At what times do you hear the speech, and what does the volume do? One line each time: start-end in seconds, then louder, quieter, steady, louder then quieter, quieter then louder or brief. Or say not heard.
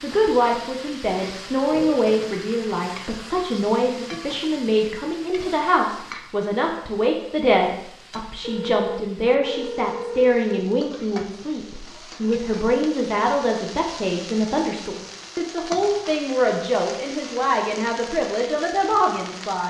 0.0-19.6 steady.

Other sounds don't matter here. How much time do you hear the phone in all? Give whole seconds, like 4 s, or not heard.
2 s.